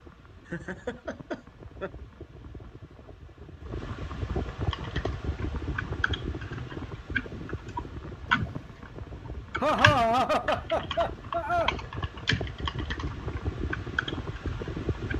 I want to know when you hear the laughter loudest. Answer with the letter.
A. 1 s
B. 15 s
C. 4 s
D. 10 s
D.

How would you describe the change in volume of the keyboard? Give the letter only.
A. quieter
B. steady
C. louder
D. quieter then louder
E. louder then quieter
E.